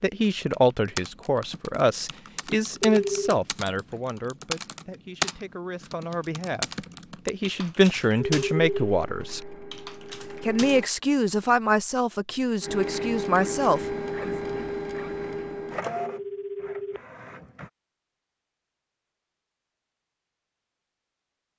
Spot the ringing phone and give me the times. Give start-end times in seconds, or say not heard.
2.9-3.4, 8.2-9.1, 15.9-17.0.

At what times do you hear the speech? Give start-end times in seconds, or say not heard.
0.0-9.6, 10.4-14.3.